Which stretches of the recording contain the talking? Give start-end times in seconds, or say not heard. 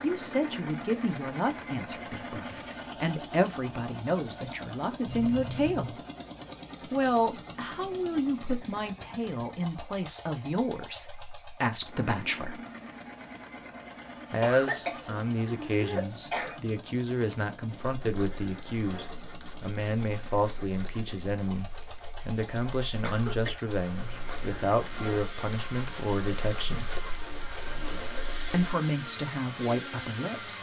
0.0-6.0, 6.9-12.6, 14.3-26.9, 28.5-30.5.